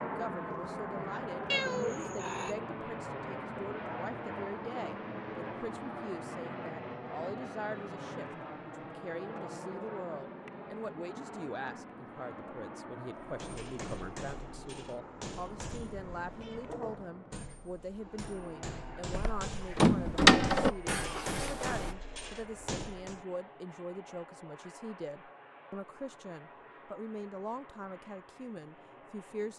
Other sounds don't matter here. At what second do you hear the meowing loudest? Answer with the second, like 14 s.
2 s.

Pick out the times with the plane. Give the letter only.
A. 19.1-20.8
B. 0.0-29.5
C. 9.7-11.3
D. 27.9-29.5
B.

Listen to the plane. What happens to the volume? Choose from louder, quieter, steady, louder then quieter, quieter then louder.
quieter.